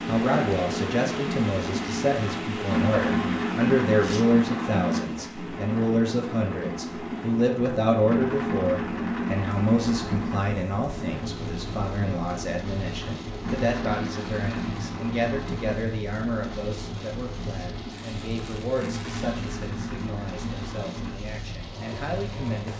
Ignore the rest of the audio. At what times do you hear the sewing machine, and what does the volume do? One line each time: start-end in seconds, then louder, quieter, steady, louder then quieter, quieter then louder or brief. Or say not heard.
0.0-22.7 quieter.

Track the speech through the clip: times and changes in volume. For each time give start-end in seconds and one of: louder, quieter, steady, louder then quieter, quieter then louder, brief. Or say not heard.
0.1-22.7 quieter.